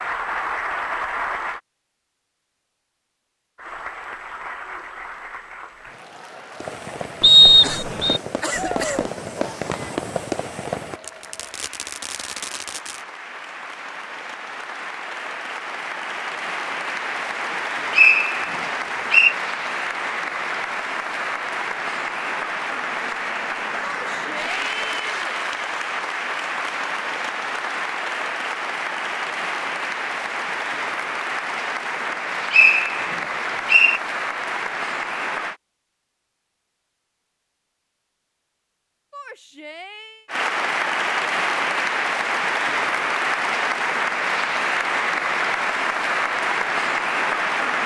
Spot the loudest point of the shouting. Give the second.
9 s.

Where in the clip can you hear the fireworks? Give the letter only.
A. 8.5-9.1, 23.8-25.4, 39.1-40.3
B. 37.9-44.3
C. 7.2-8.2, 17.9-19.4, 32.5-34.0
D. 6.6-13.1
D.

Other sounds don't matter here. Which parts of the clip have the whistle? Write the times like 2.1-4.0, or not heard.
7.2-8.2, 17.9-19.4, 32.5-34.0.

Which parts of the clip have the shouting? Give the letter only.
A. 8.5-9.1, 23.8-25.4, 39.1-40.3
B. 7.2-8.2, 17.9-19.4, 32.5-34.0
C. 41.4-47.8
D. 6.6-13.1
A.